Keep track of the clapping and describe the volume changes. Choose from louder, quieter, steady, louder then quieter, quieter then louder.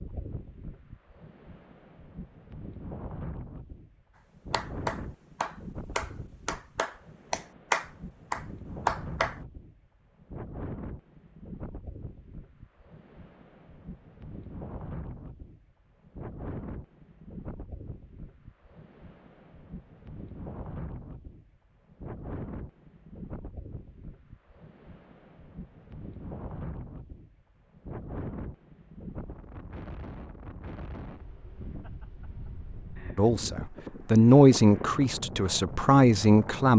louder.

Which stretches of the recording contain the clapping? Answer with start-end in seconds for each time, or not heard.
4.5-9.4.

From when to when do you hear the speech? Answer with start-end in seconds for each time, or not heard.
33.1-36.7.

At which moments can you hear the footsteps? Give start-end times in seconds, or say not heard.
not heard.